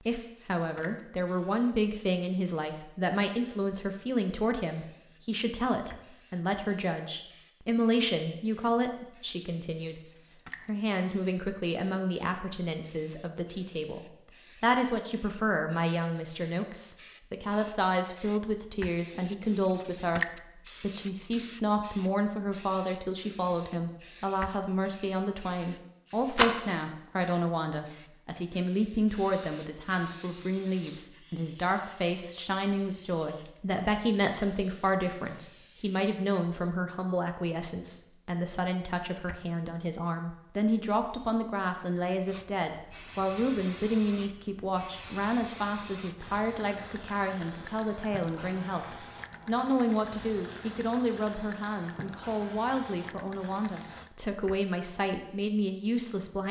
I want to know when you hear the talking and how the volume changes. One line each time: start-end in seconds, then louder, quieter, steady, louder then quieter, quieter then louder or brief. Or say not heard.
0.0-56.4 steady.